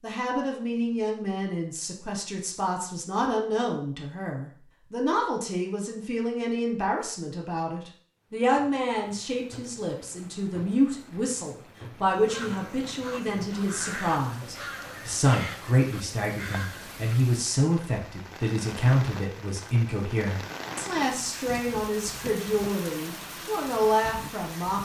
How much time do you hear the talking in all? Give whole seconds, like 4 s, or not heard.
25 s.